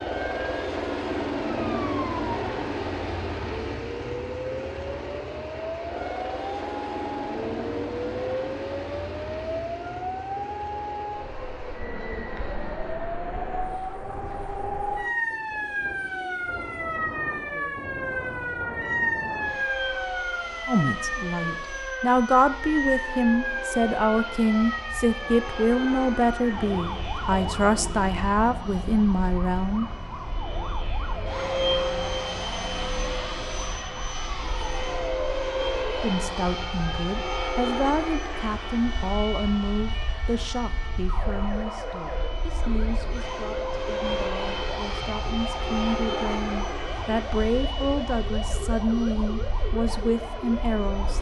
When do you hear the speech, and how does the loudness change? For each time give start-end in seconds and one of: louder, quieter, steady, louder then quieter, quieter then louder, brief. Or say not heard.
20.6-29.9 steady
36.0-51.1 quieter then louder.